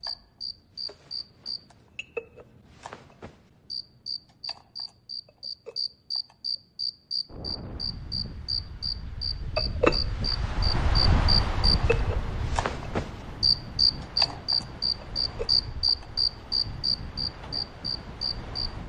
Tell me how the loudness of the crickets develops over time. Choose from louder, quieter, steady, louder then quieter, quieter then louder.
louder.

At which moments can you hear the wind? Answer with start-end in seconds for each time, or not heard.
7.2-18.8.